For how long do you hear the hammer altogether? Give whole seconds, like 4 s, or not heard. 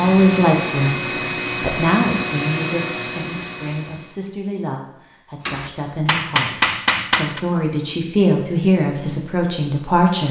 2 s.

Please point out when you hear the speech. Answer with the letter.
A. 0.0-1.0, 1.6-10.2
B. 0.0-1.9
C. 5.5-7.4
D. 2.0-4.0
A.